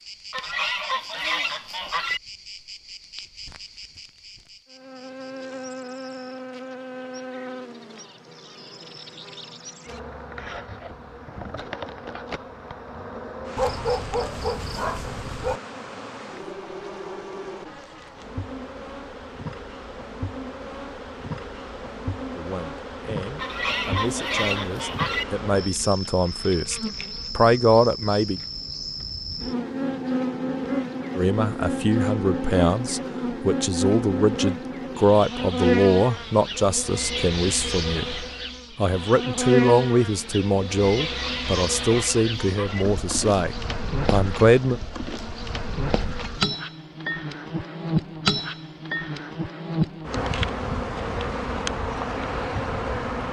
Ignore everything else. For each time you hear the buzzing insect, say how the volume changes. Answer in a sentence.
You can hear the buzzing insect from 0.0 to 53.2 s, getting louder.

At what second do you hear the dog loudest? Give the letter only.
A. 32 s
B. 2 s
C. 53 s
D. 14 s
D.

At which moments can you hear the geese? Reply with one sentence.
You can hear the geese from 0.3 to 2.2 s, from 23.4 to 25.2 s and from 41.0 to 42.9 s.